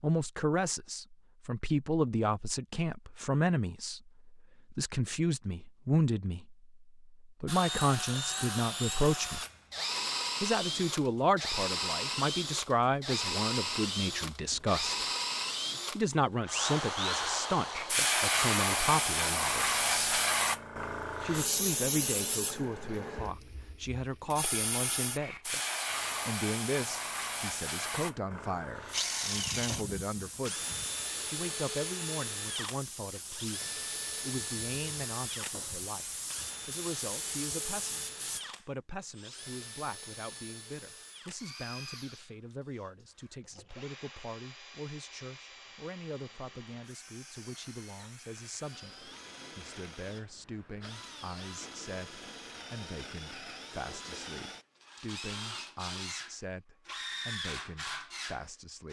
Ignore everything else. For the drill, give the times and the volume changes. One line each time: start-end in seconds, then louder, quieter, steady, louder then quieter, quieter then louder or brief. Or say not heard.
7.5-18.0 steady
28.9-58.8 quieter then louder.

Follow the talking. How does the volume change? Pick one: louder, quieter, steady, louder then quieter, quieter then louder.
quieter.